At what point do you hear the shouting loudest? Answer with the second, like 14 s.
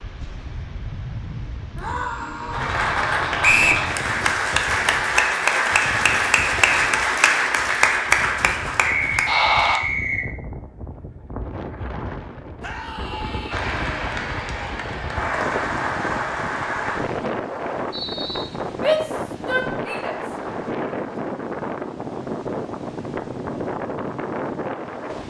19 s.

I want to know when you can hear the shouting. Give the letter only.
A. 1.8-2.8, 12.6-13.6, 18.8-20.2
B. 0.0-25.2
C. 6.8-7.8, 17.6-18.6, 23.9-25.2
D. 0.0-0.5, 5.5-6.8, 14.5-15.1
A.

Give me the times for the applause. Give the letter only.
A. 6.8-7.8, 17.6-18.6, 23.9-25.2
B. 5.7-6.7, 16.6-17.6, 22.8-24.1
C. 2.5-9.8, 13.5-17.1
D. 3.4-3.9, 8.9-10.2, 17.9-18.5
C.